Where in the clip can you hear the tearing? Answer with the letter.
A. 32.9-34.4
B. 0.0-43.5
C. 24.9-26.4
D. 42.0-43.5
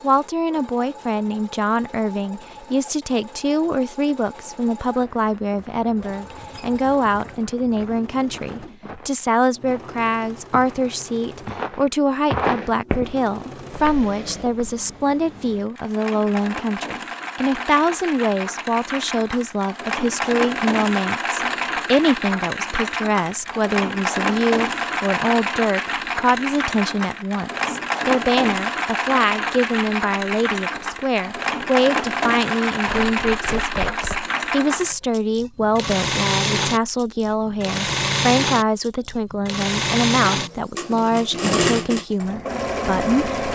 A.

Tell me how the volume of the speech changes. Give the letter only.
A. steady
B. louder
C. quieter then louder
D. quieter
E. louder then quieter
A.